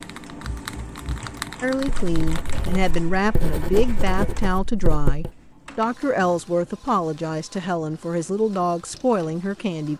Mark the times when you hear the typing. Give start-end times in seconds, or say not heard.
0.0-2.8.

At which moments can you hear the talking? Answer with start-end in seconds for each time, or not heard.
1.6-9.9.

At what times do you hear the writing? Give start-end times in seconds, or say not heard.
1.8-5.3.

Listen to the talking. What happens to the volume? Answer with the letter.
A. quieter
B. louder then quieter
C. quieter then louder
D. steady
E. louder
D.